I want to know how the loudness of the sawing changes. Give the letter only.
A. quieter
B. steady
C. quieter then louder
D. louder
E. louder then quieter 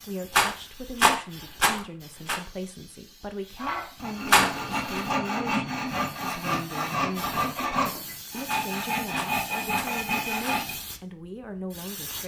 B.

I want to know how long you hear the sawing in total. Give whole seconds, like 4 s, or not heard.
7 s.